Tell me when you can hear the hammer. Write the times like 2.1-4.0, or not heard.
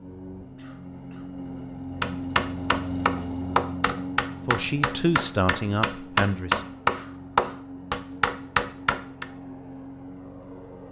2.0-9.2.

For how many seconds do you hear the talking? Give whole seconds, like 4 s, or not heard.
2 s.